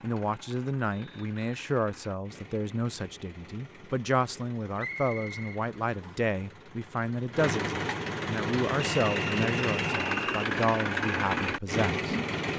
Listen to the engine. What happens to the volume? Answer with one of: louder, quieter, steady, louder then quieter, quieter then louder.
louder.